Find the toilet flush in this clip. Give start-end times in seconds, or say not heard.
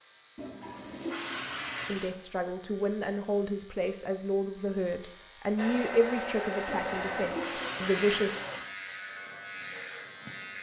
0.3-2.1, 6.7-8.8.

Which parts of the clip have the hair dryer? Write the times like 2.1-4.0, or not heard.
5.5-8.6.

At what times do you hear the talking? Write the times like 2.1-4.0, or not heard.
1.9-8.4.